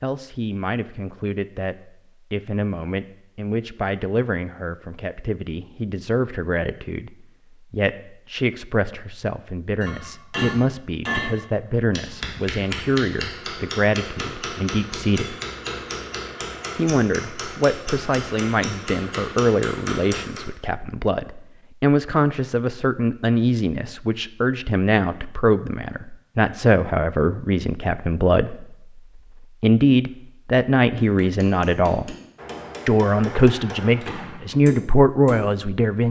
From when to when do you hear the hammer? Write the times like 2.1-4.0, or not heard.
9.8-20.5, 30.9-35.6.